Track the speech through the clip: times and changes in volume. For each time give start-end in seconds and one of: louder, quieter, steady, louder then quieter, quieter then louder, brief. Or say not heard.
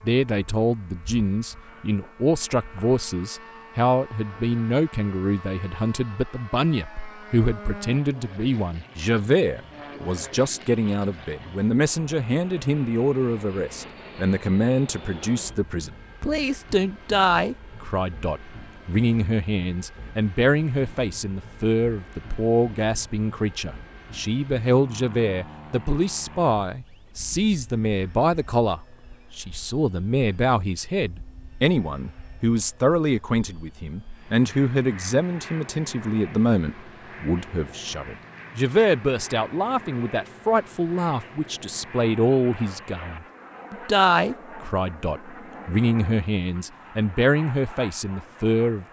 0.0-48.8 steady.